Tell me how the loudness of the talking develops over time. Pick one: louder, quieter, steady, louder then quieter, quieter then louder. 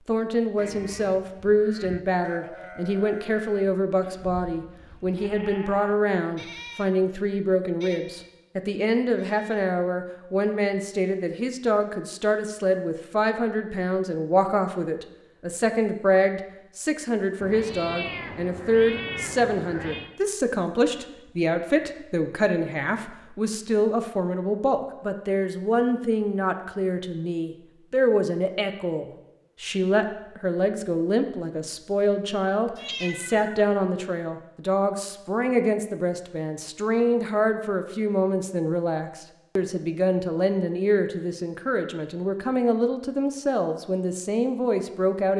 steady.